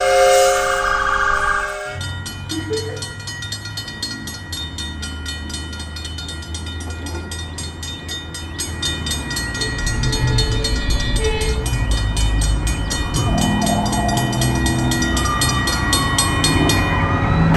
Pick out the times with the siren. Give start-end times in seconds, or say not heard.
0.0-1.8, 9.6-17.5.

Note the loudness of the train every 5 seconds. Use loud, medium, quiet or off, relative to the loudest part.
loud, medium, medium, loud.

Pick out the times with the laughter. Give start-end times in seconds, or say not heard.
2.5-3.0, 13.0-13.5.